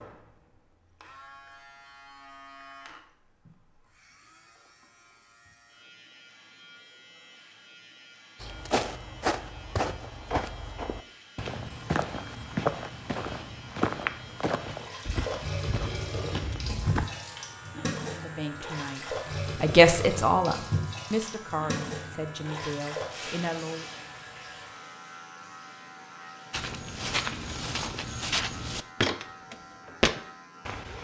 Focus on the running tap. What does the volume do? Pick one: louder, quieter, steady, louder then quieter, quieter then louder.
quieter.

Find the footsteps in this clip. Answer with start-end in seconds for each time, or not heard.
8.4-17.1, 26.5-30.9.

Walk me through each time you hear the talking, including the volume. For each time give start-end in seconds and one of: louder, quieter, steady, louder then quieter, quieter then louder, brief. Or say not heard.
18.1-23.9 louder then quieter.